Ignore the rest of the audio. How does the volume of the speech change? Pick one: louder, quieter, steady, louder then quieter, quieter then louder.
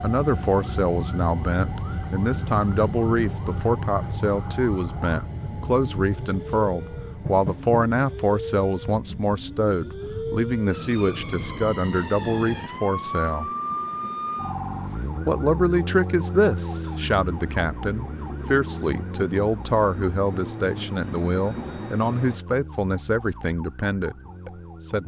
steady.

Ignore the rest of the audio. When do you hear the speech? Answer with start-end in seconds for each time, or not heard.
0.0-13.5, 15.2-25.0.